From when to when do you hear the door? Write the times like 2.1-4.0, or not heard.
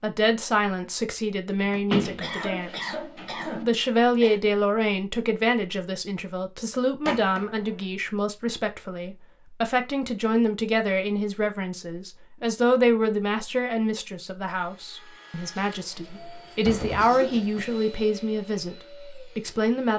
1.9-3.5, 7.0-7.8, 15.8-17.8.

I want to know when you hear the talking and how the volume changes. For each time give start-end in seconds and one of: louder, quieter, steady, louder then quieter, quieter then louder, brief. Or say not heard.
0.0-19.9 steady.